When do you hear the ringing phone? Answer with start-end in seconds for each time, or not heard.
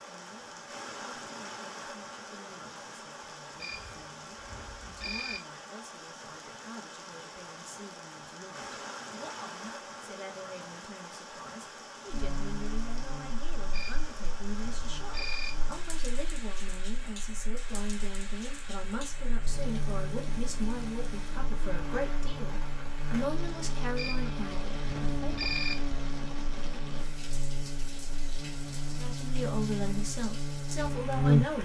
3.6-5.4, 13.7-15.5, 23.9-25.8.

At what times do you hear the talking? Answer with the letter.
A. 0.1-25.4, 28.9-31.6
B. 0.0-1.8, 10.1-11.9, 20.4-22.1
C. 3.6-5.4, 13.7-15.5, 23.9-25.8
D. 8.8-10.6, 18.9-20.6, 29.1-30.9
A.